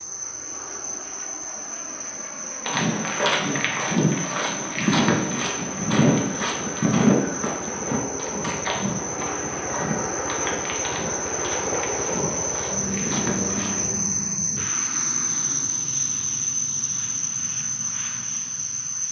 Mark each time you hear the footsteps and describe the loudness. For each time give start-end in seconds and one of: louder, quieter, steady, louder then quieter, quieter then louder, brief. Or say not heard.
2.6-13.9 quieter.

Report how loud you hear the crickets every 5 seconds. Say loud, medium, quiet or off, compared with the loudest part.
medium, medium, loud, loud.